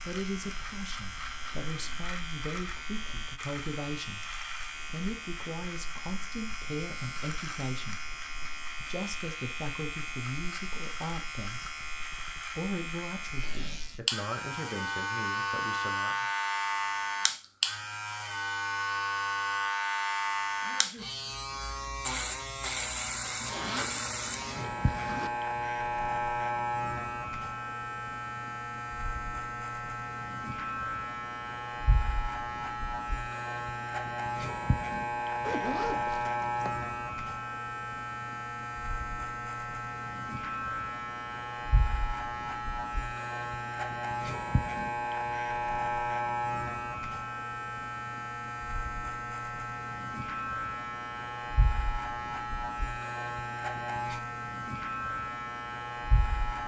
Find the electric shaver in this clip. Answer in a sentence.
The electric shaver can be heard from 0.0 to 56.6 s.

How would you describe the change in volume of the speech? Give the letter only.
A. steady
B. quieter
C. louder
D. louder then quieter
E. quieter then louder
A.